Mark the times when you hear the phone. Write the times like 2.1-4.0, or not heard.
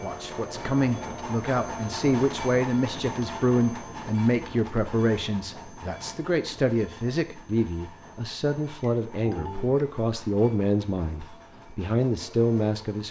9.2-9.7.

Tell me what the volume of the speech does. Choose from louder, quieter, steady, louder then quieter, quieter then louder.
steady.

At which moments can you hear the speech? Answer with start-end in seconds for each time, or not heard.
0.0-13.0.